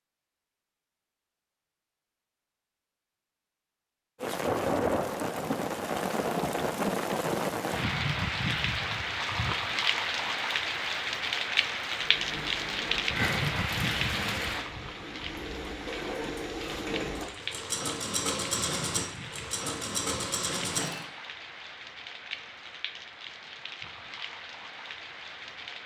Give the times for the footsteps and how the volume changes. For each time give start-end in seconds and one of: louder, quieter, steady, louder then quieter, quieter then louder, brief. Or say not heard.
not heard.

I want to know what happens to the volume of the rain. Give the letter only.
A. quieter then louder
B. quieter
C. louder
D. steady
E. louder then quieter
B.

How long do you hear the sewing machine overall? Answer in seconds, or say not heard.
9 s.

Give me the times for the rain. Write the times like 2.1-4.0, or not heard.
4.2-25.8.